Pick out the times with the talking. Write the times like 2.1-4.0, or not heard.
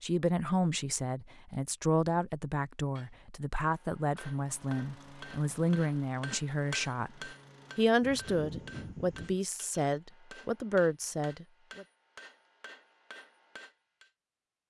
0.0-11.8.